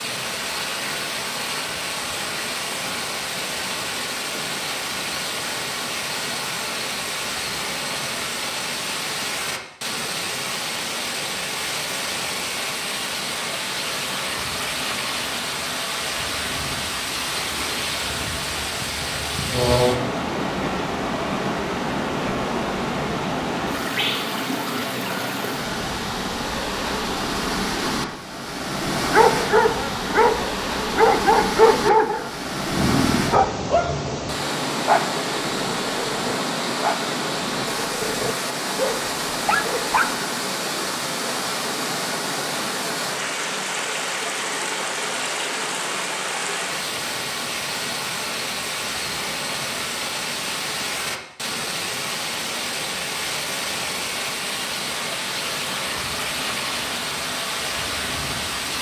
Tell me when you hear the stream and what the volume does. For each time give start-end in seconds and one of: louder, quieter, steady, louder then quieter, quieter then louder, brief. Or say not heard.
0.0-58.7 steady.